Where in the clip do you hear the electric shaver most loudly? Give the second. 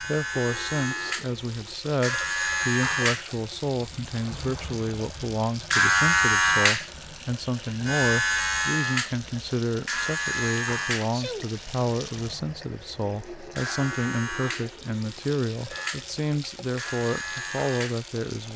6 s.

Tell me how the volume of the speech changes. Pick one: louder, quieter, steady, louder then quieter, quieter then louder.
steady.